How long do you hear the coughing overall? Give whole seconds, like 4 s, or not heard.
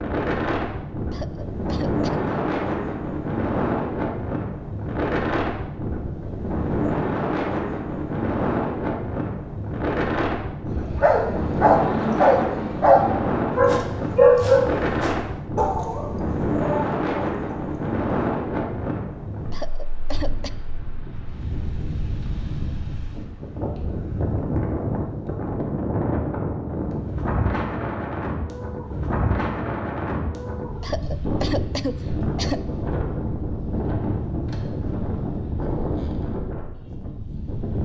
4 s.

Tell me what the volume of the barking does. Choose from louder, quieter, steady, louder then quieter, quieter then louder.
quieter.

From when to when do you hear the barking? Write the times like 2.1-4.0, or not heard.
10.8-17.8.